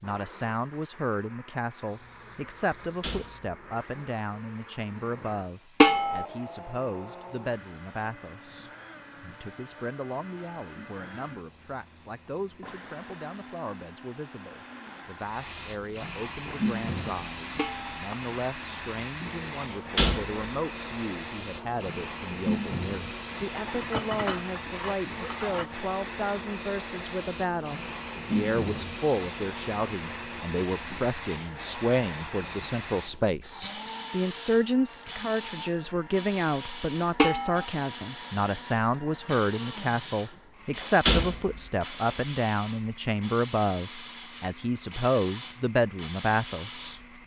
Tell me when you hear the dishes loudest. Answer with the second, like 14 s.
6 s.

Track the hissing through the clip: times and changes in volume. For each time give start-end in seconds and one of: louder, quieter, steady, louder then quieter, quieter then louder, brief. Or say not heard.
0.0-47.2 louder.